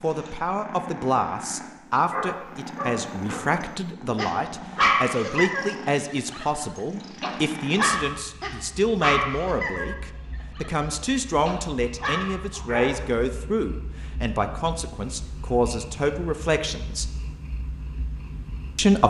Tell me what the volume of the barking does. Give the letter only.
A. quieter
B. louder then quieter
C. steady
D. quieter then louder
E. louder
B.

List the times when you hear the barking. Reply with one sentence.
You can hear the barking from 2.1 to 13.2 s.